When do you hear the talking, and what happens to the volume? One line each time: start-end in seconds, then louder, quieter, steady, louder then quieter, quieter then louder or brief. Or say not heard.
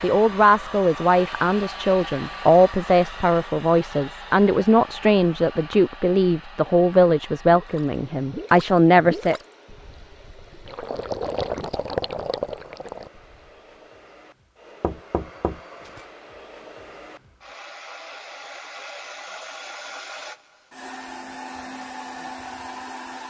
0.0-9.4 steady.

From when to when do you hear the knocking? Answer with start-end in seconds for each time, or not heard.
14.8-16.1.